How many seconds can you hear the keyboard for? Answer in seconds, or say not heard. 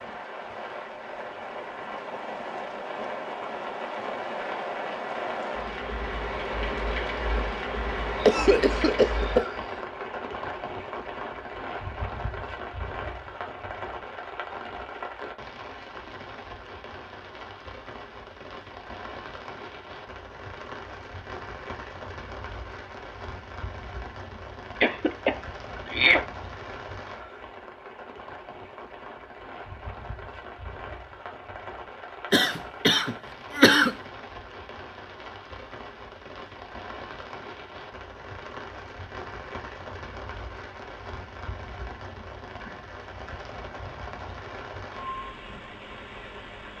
not heard.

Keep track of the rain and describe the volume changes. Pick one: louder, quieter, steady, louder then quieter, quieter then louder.
quieter.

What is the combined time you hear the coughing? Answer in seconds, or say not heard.
4 s.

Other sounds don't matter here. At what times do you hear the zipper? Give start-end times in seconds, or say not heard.
not heard.